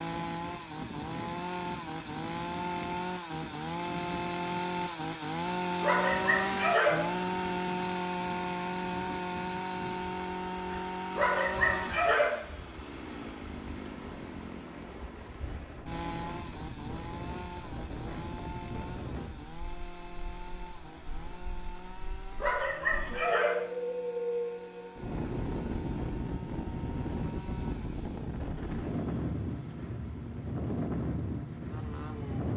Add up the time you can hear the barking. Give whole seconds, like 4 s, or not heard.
4 s.